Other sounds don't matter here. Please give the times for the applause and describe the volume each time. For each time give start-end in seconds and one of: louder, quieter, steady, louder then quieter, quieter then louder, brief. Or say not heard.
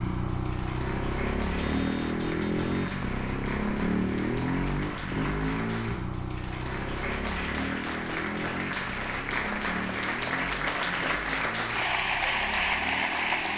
0.1-13.5 louder.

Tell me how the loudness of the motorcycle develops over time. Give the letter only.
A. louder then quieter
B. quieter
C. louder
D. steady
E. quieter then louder
B.